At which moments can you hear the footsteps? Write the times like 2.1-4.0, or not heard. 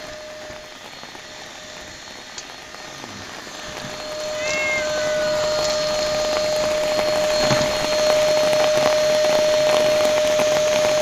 not heard.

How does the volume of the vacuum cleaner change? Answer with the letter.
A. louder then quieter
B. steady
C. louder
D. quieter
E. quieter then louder
C.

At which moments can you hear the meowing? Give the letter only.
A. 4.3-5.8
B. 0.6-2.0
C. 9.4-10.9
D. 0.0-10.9
A.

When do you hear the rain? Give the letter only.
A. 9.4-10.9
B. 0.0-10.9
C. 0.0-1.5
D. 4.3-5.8
B.